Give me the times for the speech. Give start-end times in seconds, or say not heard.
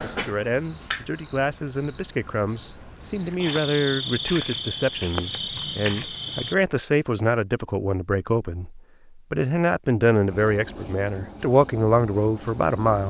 0.0-13.0.